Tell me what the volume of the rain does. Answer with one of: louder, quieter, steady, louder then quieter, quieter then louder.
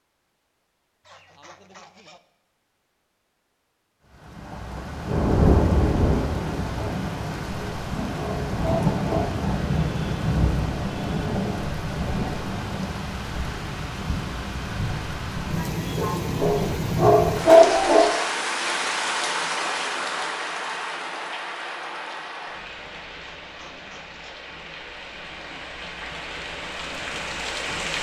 quieter.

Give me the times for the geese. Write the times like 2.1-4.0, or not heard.
1.0-2.2, 23.2-24.4.